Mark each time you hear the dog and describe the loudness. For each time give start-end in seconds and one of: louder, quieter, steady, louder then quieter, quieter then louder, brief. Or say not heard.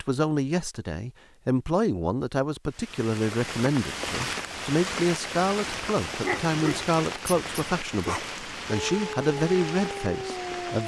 6.2-10.8 steady.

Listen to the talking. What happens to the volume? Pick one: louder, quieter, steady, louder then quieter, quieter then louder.
steady.